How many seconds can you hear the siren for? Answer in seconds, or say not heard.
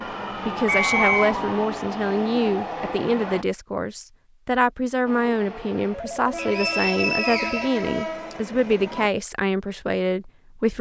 2 s.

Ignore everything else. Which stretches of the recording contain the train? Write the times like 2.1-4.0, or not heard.
0.0-3.5, 5.0-9.1.